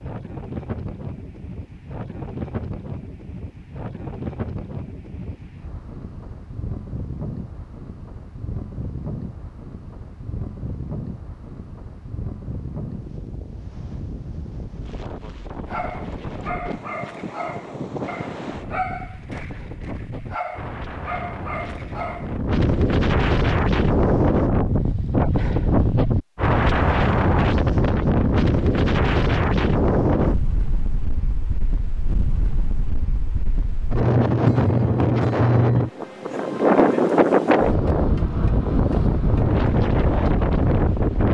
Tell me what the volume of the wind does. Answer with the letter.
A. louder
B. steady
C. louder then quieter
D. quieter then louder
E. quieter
A.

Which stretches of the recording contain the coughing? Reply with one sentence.
The coughing can't be heard in this clip.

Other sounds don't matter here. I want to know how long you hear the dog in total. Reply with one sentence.
The dog can be heard for 7 seconds in total.